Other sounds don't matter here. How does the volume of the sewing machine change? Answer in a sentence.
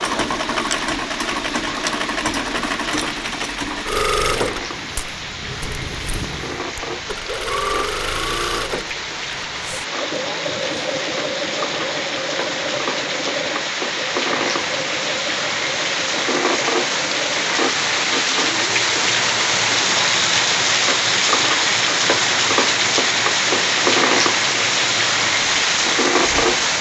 The volume of the sewing machine goes down.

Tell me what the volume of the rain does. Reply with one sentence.
The volume of the rain goes up.